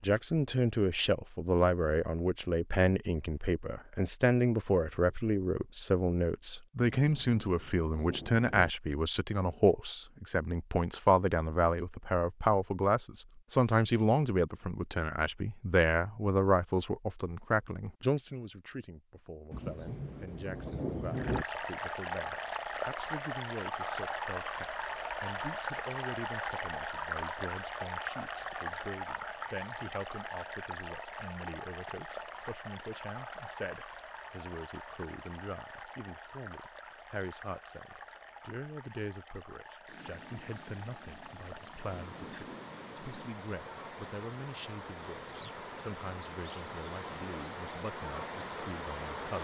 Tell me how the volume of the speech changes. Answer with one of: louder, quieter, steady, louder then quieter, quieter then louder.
quieter.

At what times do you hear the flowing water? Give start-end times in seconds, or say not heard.
21.1-49.3.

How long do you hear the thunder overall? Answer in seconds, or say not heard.
7 s.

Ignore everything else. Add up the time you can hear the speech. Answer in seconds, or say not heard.
49 s.